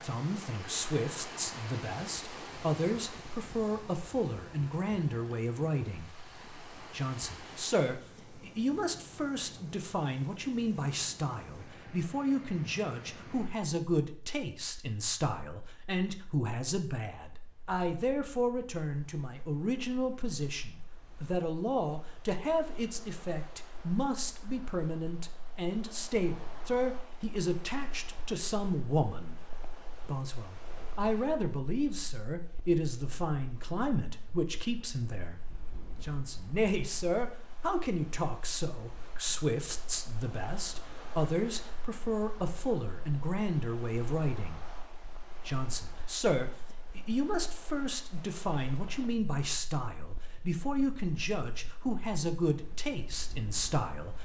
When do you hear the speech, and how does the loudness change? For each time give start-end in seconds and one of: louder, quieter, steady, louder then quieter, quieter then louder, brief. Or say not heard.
0.0-54.2 steady.